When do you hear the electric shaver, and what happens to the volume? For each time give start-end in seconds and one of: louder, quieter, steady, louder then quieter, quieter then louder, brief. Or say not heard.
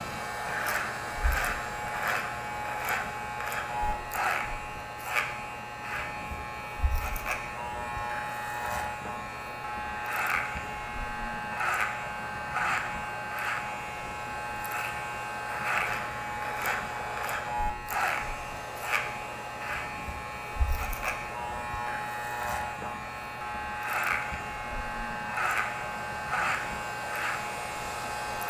0.0-28.4 steady.